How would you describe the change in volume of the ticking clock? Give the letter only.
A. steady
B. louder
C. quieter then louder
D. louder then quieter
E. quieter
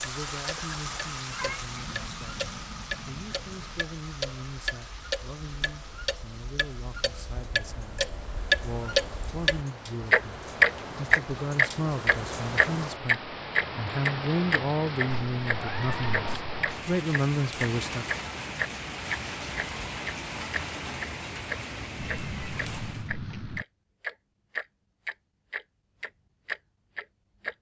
D.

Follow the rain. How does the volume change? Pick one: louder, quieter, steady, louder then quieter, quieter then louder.
quieter then louder.